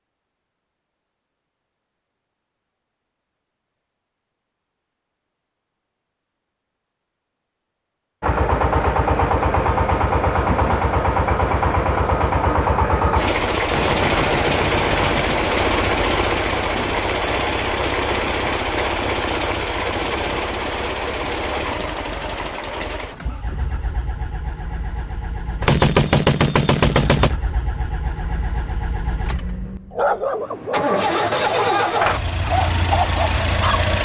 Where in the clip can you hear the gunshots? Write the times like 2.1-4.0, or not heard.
13.7-15.4, 25.6-27.4.